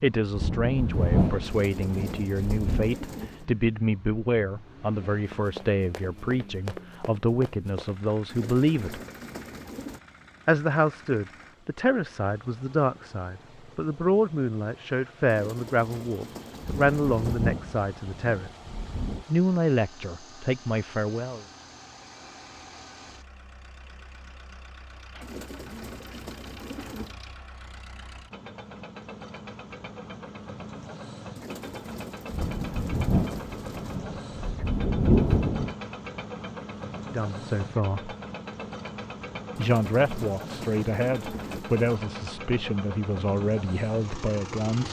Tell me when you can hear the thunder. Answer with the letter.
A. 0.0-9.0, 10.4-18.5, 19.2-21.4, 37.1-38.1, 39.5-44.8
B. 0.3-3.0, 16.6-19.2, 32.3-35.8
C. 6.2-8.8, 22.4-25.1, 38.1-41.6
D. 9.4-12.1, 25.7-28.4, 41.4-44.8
B.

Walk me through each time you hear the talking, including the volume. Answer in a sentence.
The talking can be heard from 0.0 to 9.0 s, at a steady volume; from 10.4 to 18.5 s, at a steady volume; briefly from 19.2 to 21.4 s; briefly from 37.1 to 38.1 s; and from 39.5 to 44.8 s, at a steady volume.